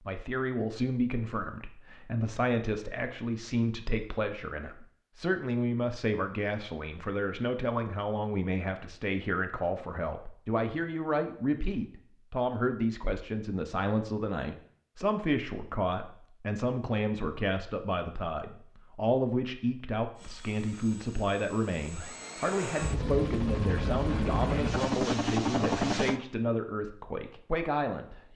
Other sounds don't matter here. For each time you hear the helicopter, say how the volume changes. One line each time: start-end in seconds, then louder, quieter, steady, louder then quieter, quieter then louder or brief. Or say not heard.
20.1-26.2 louder.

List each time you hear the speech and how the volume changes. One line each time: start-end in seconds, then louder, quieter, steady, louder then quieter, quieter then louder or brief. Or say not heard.
0.1-28.3 steady.